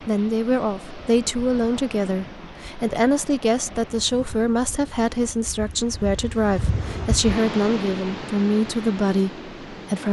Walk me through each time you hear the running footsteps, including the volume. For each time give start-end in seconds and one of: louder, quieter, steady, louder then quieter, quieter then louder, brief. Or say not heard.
not heard.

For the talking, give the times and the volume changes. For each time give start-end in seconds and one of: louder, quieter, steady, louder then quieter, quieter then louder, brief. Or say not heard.
0.1-10.0 steady.